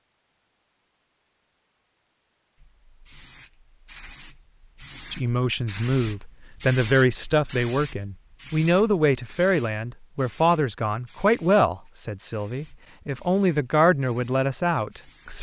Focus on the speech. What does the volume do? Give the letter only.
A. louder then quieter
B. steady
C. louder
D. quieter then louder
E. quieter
B.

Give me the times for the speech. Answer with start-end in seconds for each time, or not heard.
5.1-15.3.